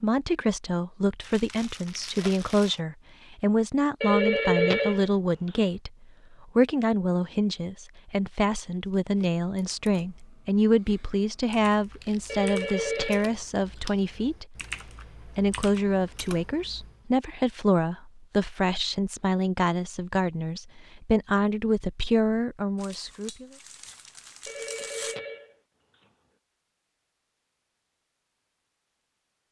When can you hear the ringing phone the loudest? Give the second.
5 s.